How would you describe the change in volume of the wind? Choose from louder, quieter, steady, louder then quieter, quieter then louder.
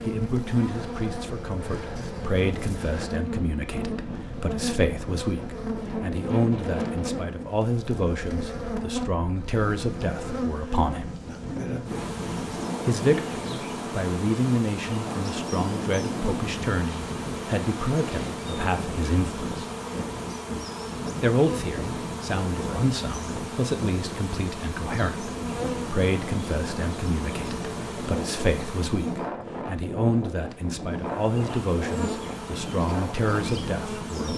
steady.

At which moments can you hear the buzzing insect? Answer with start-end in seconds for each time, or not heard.
0.0-29.3, 31.1-34.3.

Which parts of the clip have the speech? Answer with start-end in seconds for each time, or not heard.
0.0-11.2, 12.8-19.6, 21.2-34.3.